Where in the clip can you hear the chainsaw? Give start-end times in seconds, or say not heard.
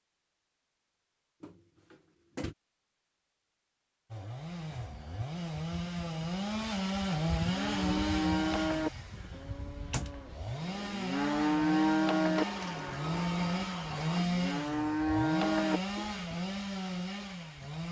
4.1-17.8.